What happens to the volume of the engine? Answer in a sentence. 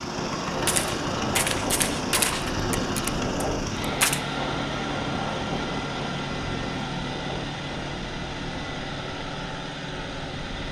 The loudness of the engine stays about the same.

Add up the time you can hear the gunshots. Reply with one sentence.
You can hear the gunshots for 4 seconds altogether.